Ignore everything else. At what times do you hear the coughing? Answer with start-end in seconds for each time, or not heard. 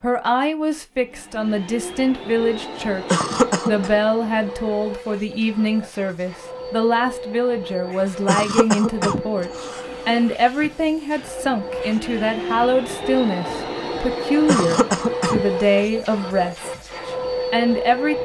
3.1-3.9, 8.2-9.8, 14.4-15.4.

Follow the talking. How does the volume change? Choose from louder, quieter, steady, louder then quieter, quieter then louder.
steady.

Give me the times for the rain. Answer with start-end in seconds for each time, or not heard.
not heard.